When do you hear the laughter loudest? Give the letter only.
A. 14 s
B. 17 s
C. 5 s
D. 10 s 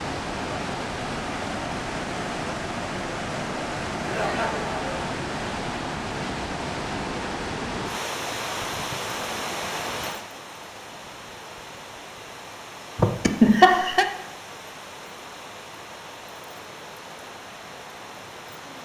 A.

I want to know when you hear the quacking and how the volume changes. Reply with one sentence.
You can't hear the quacking here.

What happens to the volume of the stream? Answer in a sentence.
The volume of the stream goes down.